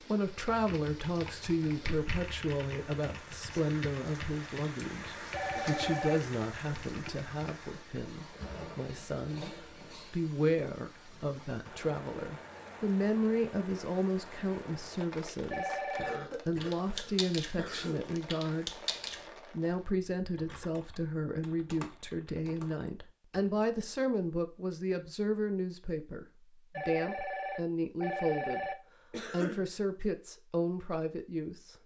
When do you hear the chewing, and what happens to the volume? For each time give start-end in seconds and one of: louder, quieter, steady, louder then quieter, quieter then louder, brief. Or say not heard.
not heard.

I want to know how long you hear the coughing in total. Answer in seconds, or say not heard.
3 s.